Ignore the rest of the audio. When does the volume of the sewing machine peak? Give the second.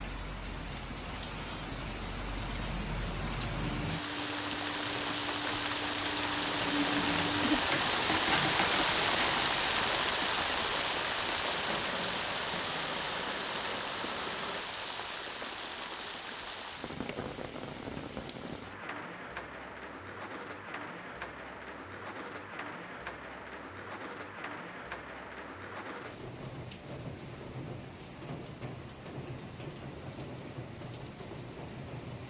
8 s.